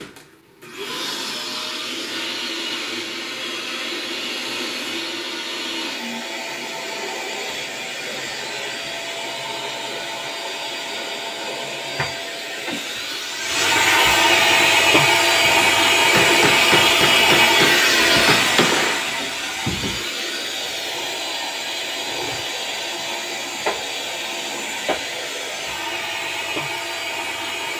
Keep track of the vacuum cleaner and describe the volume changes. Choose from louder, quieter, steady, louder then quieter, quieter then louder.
louder then quieter.